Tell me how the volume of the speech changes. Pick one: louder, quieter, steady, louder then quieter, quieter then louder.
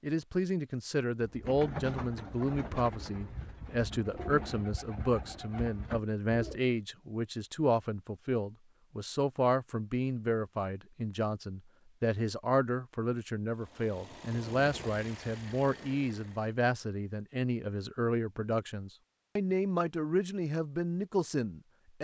steady.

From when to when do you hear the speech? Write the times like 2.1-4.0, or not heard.
0.0-21.9.